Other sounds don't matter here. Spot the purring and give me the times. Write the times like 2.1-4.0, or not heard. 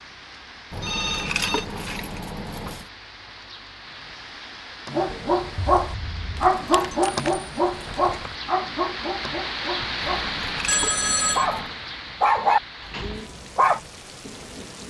not heard.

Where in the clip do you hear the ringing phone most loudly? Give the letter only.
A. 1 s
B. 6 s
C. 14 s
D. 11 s
D.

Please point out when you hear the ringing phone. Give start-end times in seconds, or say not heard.
0.8-1.6, 5.0-6.5, 10.7-11.4.